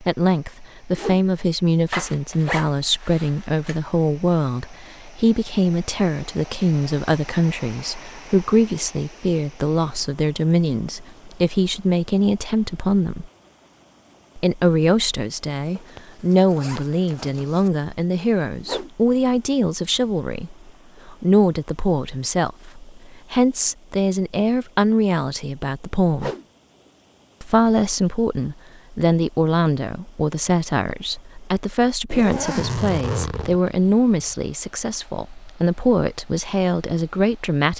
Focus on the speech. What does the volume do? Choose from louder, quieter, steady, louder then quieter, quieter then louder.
steady.